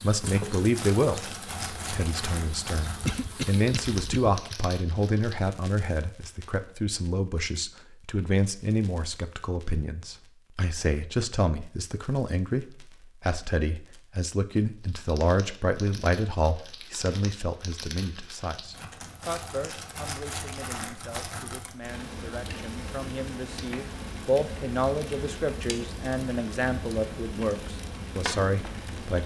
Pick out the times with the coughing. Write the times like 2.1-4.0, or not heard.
3.0-4.2.